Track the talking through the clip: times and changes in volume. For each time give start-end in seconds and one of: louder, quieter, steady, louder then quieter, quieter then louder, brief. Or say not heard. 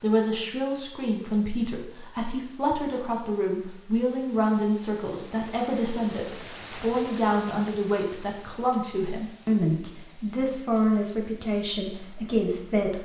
0.0-12.9 steady.